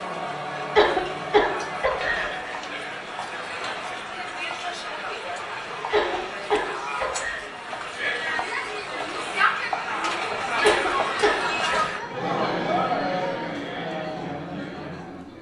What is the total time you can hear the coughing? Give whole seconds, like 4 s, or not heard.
4 s.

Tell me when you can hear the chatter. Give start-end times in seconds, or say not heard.
0.0-15.3.